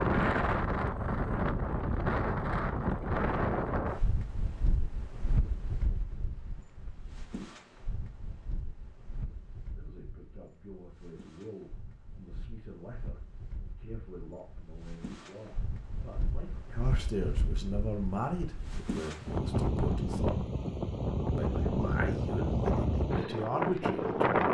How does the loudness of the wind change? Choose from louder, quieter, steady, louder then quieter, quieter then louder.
quieter then louder.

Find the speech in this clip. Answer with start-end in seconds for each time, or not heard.
9.8-20.4, 21.4-24.4.